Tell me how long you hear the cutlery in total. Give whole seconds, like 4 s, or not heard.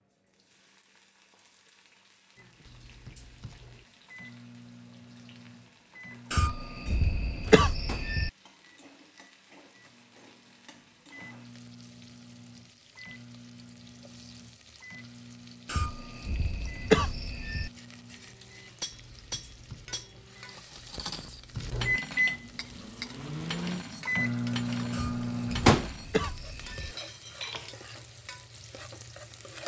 9 s.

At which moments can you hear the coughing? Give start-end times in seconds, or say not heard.
6.3-8.3, 15.7-17.7, 24.9-26.9.